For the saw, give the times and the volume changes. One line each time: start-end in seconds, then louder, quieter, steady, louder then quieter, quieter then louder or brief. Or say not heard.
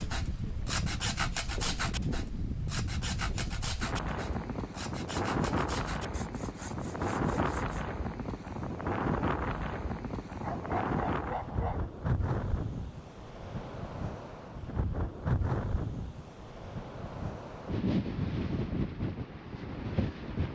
0.0-7.8 quieter.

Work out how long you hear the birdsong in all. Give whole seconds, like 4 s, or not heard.
not heard.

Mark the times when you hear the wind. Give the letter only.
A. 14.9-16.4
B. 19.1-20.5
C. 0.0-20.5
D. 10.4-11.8
C.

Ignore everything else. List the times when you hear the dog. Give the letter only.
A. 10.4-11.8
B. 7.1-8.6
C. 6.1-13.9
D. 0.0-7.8
A.